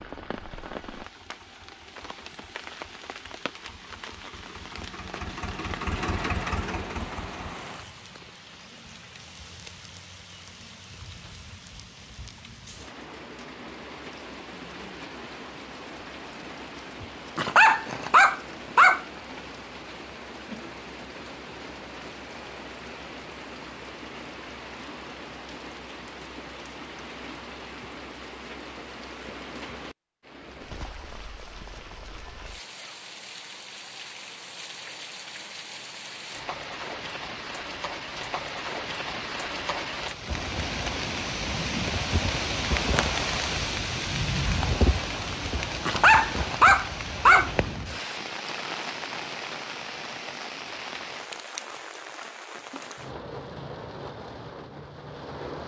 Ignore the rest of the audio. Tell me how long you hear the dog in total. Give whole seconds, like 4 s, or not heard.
3 s.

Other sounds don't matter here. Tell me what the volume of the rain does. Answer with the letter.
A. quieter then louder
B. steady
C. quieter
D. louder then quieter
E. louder
E.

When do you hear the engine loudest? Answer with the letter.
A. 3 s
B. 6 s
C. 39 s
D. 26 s
B.